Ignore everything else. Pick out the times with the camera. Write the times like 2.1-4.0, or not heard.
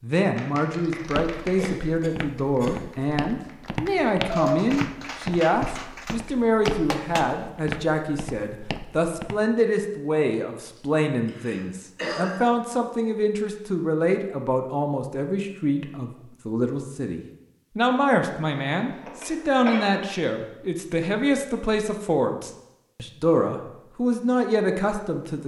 not heard.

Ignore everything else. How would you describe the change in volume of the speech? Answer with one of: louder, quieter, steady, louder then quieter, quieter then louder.
steady.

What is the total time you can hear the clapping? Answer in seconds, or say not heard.
7 s.